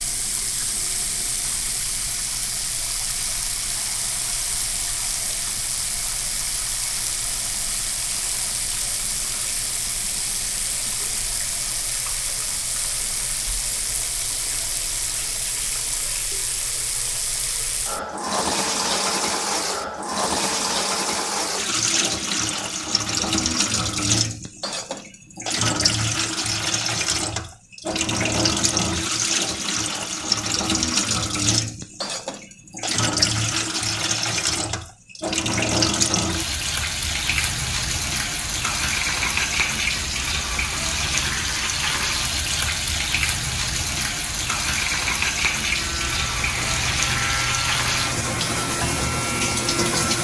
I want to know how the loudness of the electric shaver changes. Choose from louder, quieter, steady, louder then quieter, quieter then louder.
steady.